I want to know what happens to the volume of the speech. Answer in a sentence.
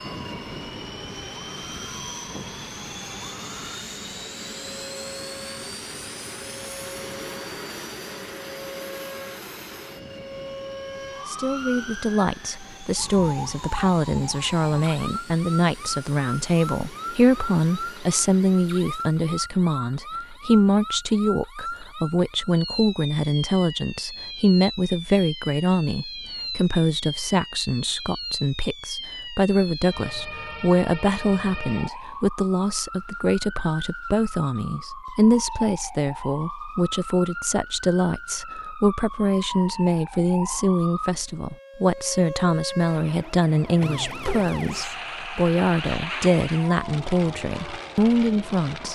The volume of the speech stays about the same.